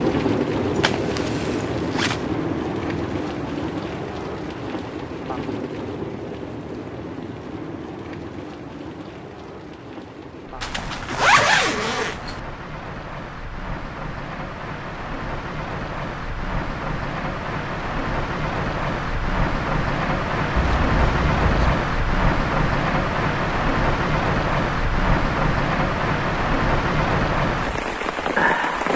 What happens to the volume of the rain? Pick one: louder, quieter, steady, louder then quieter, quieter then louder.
quieter then louder.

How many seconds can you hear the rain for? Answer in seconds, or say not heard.
29 s.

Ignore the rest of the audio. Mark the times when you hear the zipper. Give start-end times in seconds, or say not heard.
0.8-2.1, 10.6-12.4, 20.6-21.8.